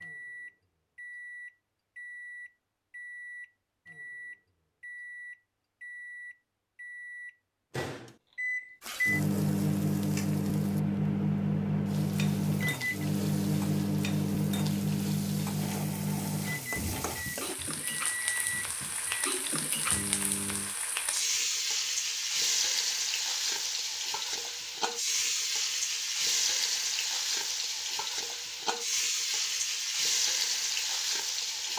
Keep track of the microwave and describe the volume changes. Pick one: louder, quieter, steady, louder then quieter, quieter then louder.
louder then quieter.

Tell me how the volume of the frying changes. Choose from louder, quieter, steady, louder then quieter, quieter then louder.
louder.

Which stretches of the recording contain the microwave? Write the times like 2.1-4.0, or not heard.
0.0-20.8.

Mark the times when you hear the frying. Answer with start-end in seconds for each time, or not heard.
8.8-31.7.